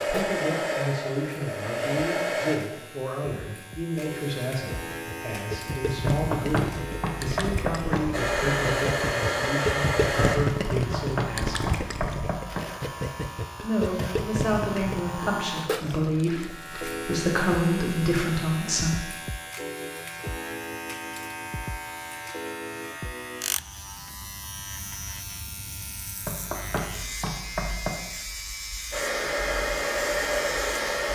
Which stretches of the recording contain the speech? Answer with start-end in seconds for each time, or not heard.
0.1-11.7, 13.6-19.1.